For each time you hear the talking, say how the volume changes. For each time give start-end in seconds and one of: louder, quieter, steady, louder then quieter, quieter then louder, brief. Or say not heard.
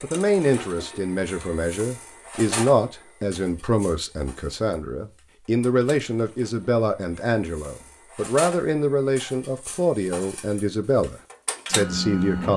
0.0-12.5 steady.